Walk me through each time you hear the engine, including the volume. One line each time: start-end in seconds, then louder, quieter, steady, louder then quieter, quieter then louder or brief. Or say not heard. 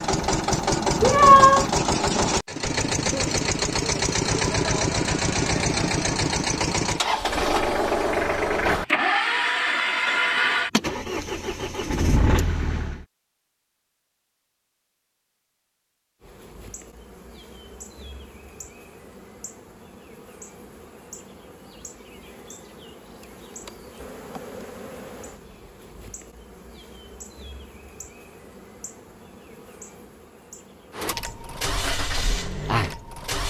0.0-13.1 steady
30.9-33.4 brief.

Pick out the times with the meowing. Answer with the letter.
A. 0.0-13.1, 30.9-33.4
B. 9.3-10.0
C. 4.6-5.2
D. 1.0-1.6
D.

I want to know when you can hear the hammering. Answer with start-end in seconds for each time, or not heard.
not heard.